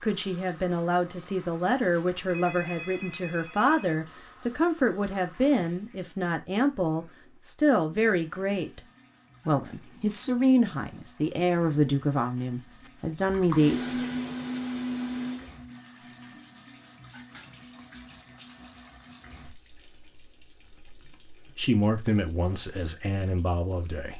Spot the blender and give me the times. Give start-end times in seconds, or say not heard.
12.8-15.6.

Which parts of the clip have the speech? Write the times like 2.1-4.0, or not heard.
0.0-8.8, 9.4-13.8, 21.6-24.1.